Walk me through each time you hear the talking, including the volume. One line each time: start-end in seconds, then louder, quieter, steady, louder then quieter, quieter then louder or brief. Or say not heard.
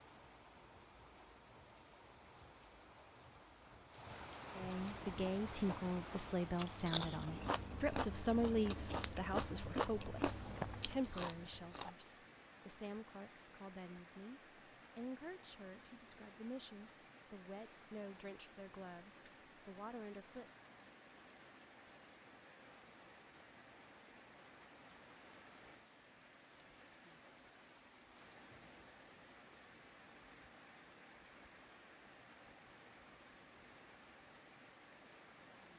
4.5-20.5 quieter.